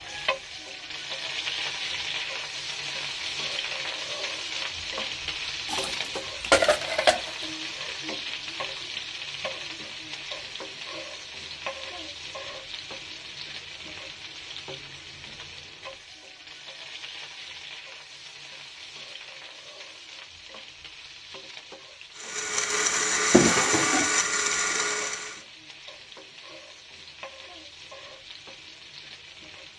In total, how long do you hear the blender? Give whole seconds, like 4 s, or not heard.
3 s.